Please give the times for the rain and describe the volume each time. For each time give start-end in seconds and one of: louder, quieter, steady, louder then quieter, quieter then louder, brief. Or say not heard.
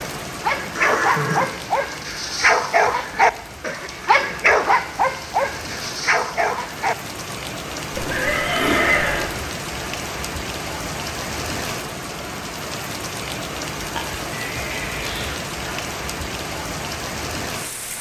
0.0-17.9 louder.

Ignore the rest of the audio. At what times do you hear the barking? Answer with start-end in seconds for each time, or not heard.
0.0-7.5.